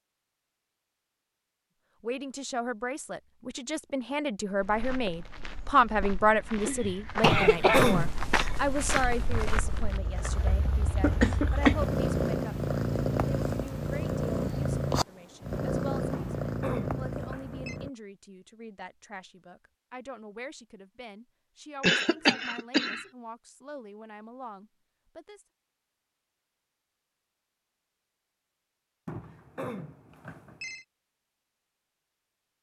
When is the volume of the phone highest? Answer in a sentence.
The loudest moment of the phone is at 8 seconds.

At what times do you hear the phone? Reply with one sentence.
The phone can be heard from 7.2 to 8.1 s, from 16.1 to 17.8 s and from 29.1 to 30.9 s.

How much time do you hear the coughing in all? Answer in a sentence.
You can hear the coughing for 3 seconds altogether.